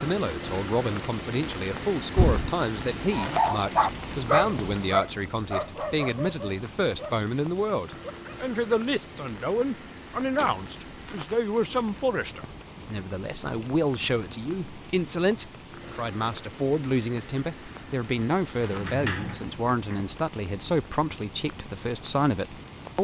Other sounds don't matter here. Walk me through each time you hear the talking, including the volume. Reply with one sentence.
The talking can be heard from 0.0 to 22.9 s, at a steady volume.